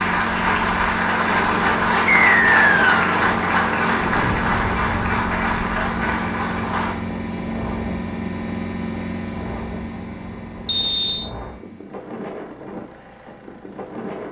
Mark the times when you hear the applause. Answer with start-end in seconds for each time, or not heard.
0.0-7.0.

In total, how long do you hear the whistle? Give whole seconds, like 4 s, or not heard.
2 s.